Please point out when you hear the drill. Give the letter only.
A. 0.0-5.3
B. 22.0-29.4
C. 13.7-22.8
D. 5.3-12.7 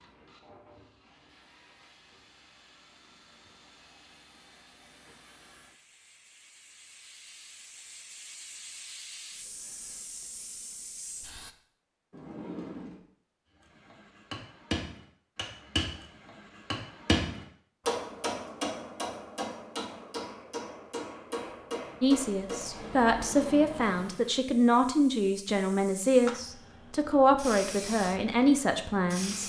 A.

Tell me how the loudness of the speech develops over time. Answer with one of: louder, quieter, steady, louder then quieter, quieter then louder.
steady.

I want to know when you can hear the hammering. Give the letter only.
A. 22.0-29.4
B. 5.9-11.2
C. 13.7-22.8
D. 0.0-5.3
C.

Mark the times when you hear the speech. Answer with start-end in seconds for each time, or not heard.
22.0-29.4.